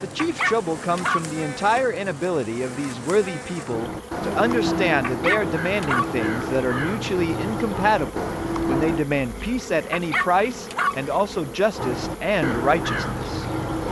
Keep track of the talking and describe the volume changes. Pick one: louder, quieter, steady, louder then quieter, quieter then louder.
steady.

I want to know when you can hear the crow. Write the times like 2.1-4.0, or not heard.
3.6-9.1, 11.8-13.8.